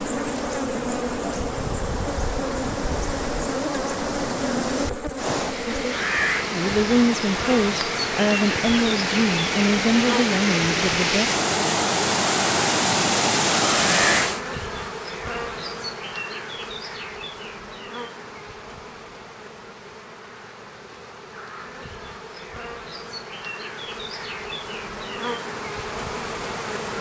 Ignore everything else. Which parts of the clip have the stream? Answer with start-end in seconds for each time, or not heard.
0.0-14.4.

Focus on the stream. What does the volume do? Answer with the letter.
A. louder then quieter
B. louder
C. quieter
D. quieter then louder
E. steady
B.